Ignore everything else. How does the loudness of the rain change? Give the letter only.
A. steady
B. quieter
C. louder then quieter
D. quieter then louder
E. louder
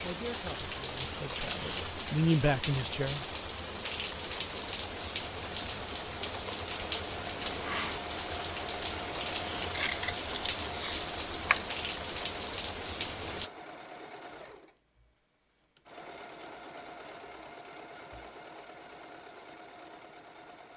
A.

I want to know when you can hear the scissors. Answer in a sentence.
You can hear the scissors from 9.7 to 11.8 s.